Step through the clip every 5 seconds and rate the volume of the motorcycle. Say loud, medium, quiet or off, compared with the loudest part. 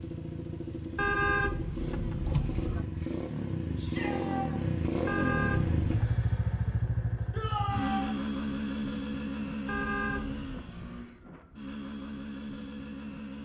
loud, loud, medium.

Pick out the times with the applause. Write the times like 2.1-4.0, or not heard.
not heard.